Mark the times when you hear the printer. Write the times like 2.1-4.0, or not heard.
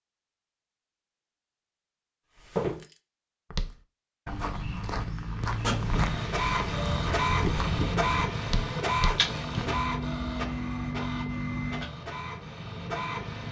5.4-13.4.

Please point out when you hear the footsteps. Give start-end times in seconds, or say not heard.
2.4-9.8.